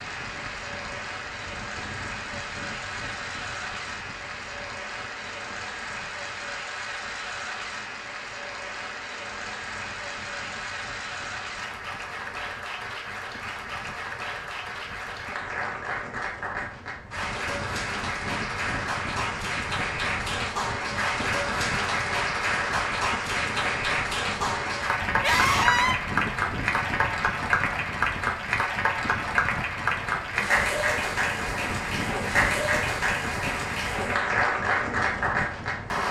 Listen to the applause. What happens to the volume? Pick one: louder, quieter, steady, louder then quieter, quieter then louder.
louder.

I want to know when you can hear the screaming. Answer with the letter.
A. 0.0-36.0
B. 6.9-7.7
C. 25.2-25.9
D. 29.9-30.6
C.